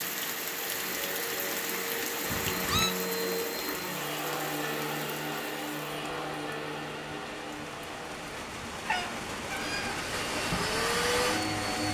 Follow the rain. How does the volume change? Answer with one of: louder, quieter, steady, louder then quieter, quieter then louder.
quieter then louder.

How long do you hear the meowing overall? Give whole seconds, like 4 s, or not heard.
2 s.